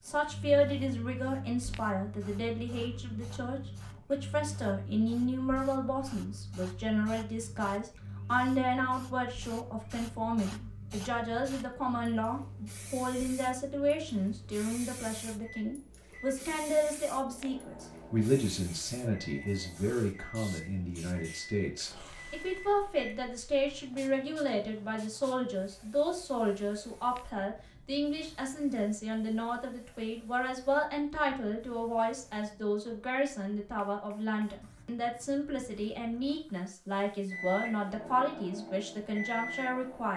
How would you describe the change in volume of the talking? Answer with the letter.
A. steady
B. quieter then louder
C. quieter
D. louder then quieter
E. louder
A.